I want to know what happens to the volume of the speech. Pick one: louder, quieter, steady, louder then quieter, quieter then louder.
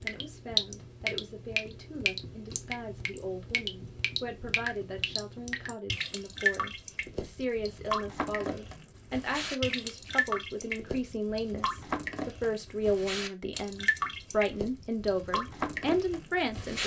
louder.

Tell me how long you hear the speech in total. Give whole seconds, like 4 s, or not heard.
17 s.